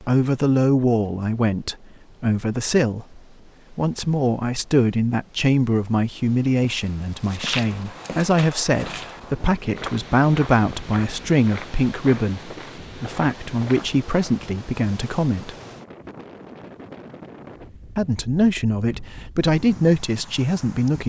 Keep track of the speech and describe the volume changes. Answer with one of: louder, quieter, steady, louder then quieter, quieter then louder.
steady.